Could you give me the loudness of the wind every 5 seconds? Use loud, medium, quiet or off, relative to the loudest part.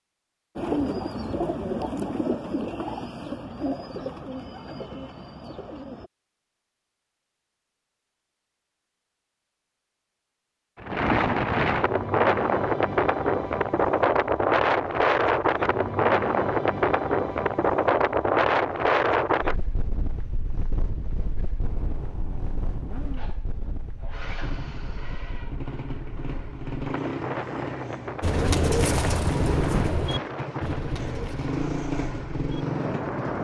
off, off, loud, loud, quiet, quiet, medium.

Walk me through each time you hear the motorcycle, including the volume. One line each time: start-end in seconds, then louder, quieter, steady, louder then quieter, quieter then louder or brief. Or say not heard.
21.6-33.3 louder.